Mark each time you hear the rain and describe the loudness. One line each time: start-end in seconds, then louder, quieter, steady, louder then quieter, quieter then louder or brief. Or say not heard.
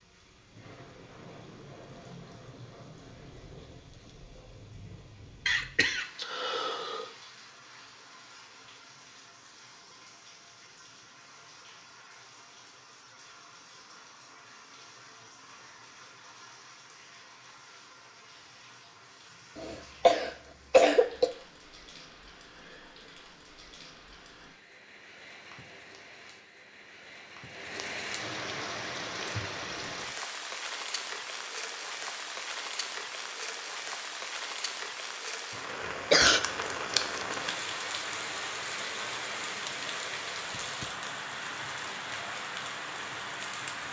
0.0-43.8 louder.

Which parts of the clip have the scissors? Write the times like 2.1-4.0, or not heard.
36.1-37.5.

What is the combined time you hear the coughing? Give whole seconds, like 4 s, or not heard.
4 s.